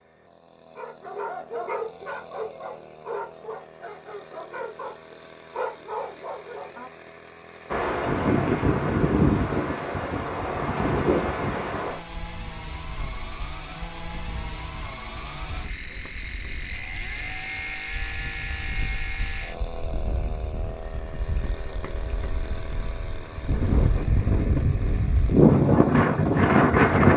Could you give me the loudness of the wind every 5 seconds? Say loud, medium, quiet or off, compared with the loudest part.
off, medium, quiet, quiet, quiet, loud.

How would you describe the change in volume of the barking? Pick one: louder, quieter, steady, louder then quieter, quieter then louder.
quieter then louder.